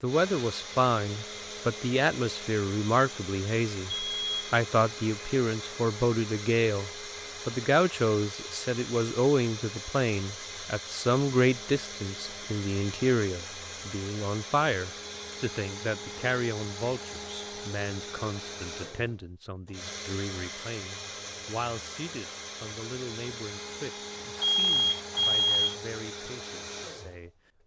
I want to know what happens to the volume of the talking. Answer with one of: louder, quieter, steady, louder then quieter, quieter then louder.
quieter.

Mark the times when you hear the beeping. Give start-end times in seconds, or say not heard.
3.9-4.3, 24.4-25.8.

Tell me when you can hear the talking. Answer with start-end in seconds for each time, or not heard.
0.0-27.6.